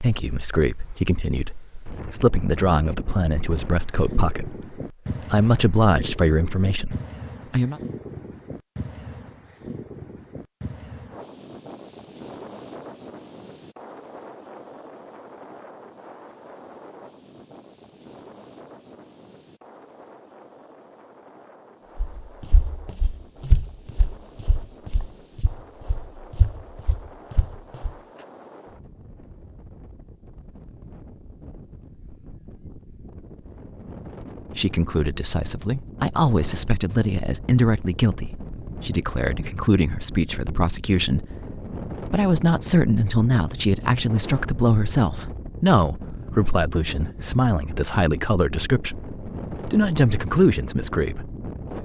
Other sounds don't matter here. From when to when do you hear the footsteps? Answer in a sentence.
The footsteps can be heard from 21.9 to 27.9 s.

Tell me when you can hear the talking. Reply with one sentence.
You can hear the talking from 0.0 to 7.8 s and from 34.5 to 51.3 s.